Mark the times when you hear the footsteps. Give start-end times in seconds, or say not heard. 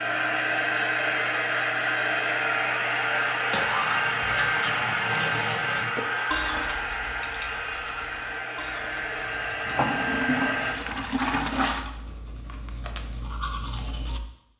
not heard.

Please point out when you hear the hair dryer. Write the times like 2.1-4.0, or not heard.
0.0-10.8.